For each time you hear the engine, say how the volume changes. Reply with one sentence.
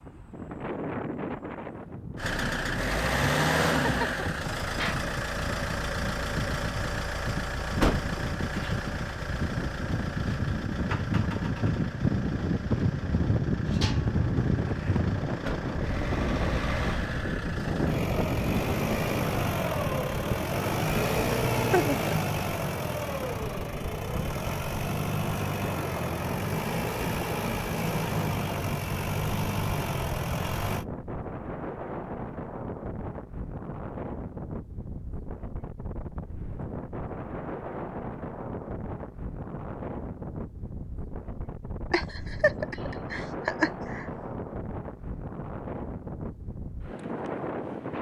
You can hear the engine from 2.1 to 30.9 s, getting quieter then louder.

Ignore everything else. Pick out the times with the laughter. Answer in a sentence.
You can hear the laughter from 3.8 to 4.2 s, from 21.6 to 22.3 s and from 41.9 to 44.0 s.